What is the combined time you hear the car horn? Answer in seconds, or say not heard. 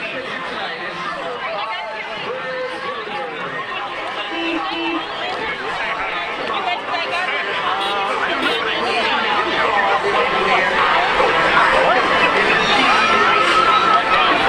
2 s.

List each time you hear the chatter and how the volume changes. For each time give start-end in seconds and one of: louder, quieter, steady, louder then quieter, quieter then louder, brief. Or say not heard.
0.0-14.4 louder.